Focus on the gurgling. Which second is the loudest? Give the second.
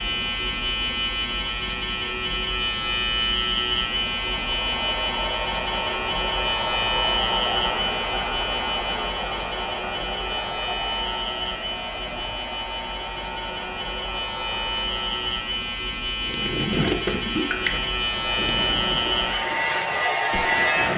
17 s.